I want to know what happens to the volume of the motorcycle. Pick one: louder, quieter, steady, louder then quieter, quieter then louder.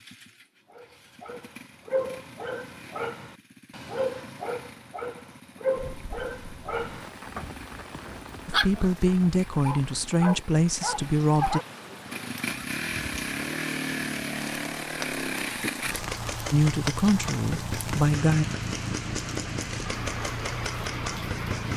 louder.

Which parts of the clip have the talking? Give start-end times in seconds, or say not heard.
8.4-11.6, 16.5-18.4.